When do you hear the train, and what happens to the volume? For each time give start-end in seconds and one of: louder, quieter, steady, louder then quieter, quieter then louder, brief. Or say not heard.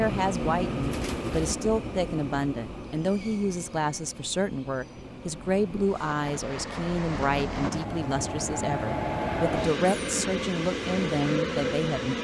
0.0-12.1 quieter then louder.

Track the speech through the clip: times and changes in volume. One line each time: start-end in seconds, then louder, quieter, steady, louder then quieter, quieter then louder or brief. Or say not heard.
0.0-12.1 steady.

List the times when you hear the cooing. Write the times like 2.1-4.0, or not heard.
0.8-1.6.